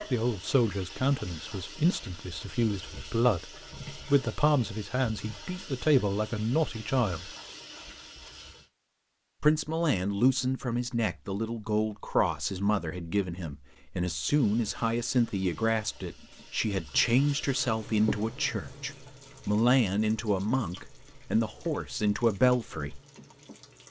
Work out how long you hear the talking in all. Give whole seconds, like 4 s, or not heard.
21 s.